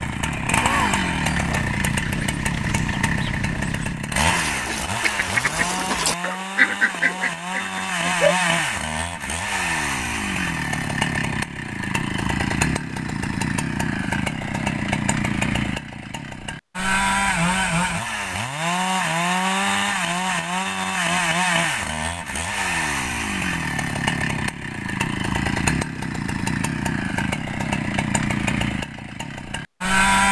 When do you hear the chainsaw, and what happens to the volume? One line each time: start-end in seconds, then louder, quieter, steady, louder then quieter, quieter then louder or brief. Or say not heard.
0.0-30.2 steady.